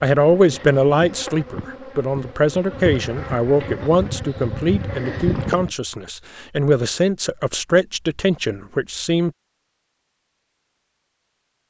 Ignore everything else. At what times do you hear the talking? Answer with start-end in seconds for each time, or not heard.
0.0-9.3.